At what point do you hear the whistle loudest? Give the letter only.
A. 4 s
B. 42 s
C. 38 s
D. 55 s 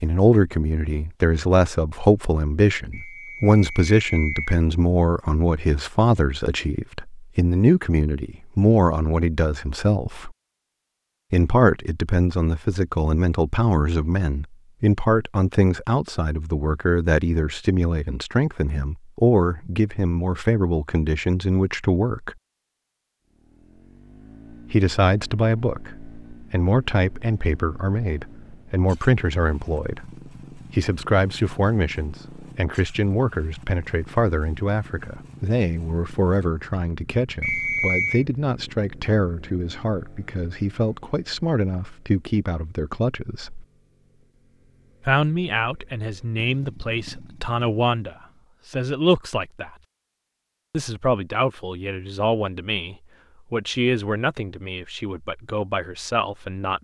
C.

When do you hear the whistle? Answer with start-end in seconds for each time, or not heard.
2.9-4.6, 37.4-38.2.